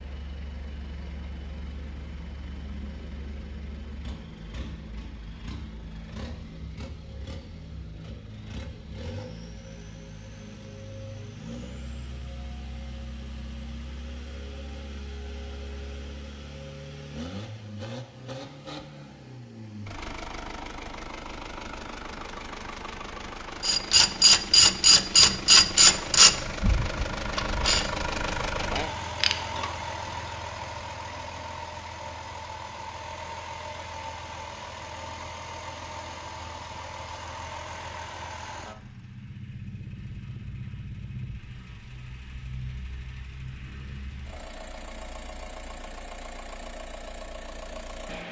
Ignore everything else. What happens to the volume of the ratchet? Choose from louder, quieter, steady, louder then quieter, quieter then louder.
quieter.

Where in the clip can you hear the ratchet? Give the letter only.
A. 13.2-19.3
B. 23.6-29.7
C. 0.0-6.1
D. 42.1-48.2
B.